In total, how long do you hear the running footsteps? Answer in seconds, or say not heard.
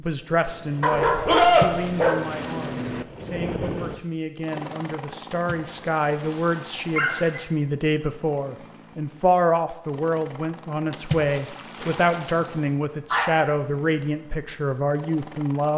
not heard.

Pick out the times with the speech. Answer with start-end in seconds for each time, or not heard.
0.0-15.7.